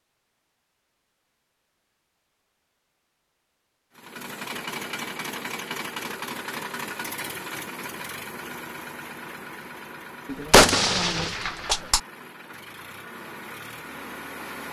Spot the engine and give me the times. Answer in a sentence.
The engine can be heard from 4.0 to 14.6 s.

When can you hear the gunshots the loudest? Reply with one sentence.
The loudest moment of the gunshots is at 11 seconds.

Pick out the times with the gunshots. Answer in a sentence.
You can hear the gunshots from 10.2 to 12.0 s.